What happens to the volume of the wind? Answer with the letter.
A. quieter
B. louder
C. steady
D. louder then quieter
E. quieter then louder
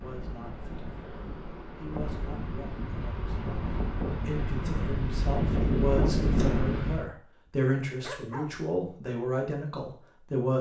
B.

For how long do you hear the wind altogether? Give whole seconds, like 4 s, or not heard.
7 s.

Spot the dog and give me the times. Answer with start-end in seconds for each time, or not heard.
8.0-8.6.